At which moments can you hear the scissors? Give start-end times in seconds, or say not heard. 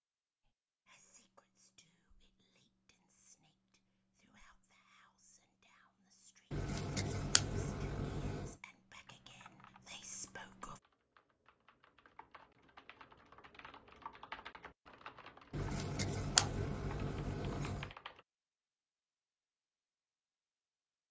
6.5-8.6, 15.5-17.9.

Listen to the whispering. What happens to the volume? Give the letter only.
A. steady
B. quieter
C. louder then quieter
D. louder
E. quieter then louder
D.